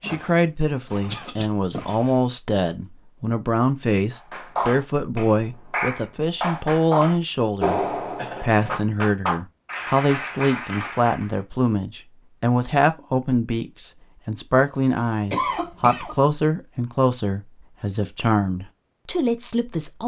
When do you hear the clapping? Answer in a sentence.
The clapping can be heard from 4.1 to 11.4 s.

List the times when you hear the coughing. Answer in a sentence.
You can hear the coughing from 1.1 to 1.5 s, from 8.2 to 8.8 s and from 15.3 to 16.1 s.